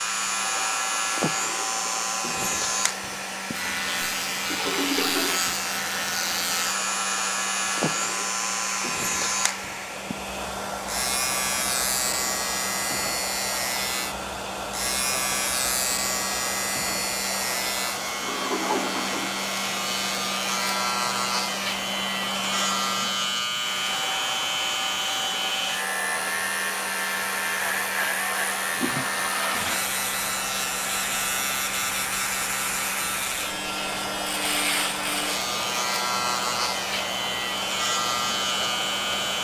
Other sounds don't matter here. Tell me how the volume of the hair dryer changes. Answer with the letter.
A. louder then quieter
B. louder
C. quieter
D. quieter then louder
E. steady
E.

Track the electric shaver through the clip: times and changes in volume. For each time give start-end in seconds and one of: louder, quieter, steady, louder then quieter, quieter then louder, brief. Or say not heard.
0.0-39.4 steady.